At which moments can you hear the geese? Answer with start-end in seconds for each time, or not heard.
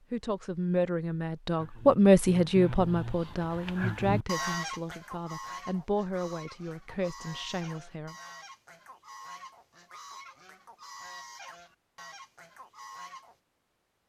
1.6-13.3.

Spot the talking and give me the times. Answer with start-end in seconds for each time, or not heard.
0.1-8.2.